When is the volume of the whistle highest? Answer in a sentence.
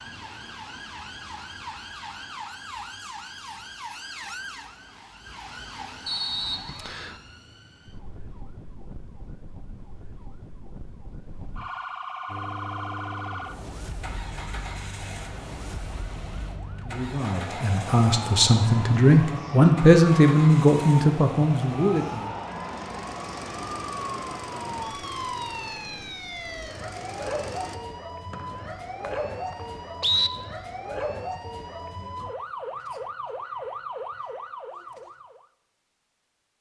The loudest moment of the whistle is at 30 seconds.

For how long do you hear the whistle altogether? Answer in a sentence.
You can hear the whistle for 3 seconds altogether.